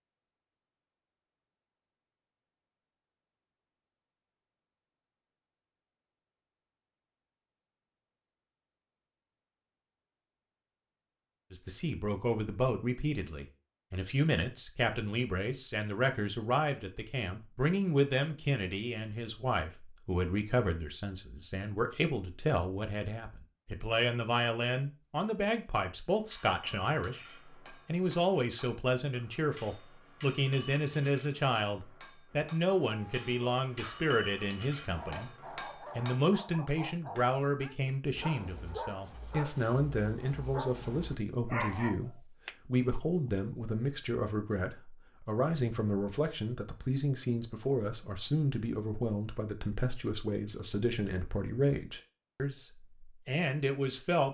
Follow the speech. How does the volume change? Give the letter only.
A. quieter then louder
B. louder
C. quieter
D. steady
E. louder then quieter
D.